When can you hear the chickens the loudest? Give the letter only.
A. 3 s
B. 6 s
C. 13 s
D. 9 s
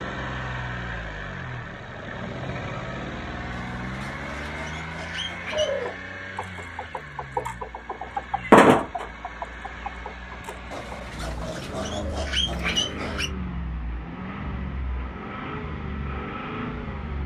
D.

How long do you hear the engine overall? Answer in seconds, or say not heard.
17 s.